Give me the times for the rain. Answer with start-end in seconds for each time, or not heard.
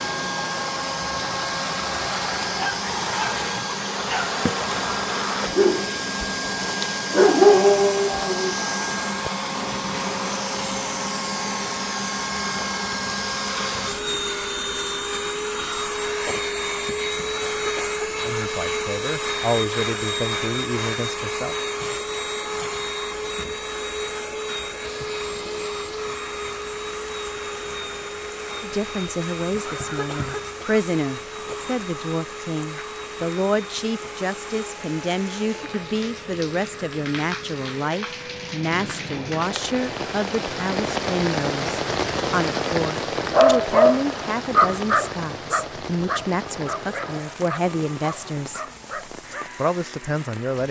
24.8-50.6.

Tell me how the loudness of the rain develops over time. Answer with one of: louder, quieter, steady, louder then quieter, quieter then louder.
louder then quieter.